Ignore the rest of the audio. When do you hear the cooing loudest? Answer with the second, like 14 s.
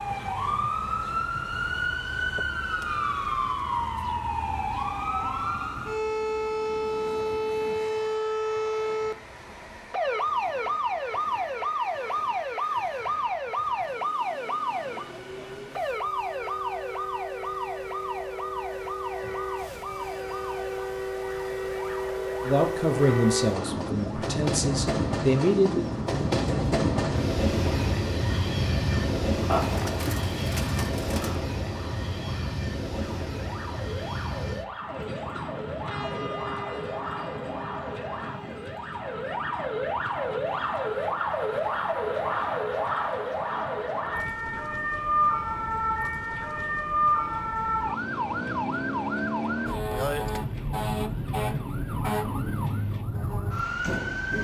30 s.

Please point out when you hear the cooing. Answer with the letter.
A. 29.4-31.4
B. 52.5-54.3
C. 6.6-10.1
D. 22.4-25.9
A.